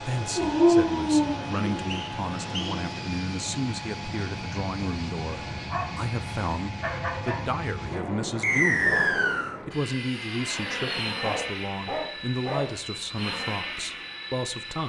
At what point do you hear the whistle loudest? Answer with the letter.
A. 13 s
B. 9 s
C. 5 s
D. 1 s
B.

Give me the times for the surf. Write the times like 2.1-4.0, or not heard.
not heard.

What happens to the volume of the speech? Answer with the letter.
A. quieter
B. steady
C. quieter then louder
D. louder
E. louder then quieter
B.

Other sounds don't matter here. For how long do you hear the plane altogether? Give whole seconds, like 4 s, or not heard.
15 s.